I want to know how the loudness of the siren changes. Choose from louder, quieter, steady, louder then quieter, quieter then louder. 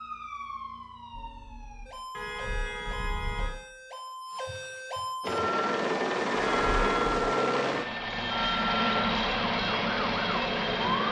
louder.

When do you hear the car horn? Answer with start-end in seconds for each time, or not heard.
2.1-3.5, 6.4-7.1.